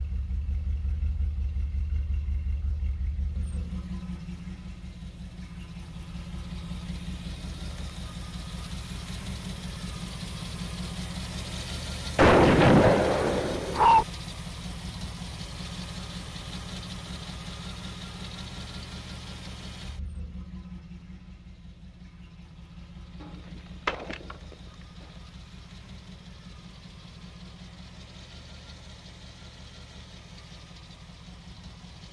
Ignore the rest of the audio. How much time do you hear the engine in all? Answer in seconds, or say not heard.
32 s.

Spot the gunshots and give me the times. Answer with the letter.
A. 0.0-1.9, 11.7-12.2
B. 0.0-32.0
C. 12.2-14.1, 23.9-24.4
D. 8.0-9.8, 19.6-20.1
C.